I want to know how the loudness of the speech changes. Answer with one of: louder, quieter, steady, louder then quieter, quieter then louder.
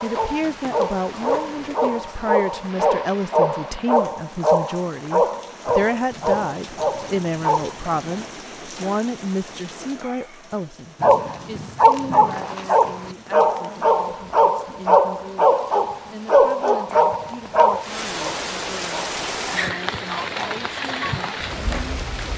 quieter.